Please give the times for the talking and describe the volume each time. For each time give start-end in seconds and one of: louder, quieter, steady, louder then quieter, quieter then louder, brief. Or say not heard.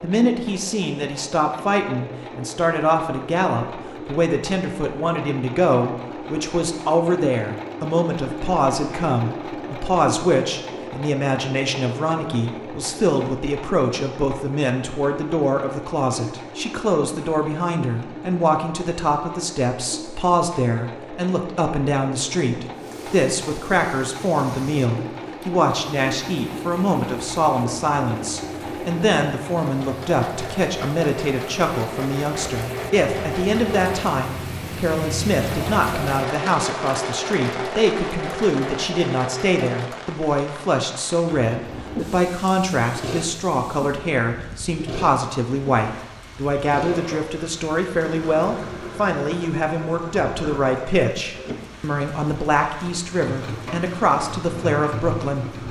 0.0-55.6 steady.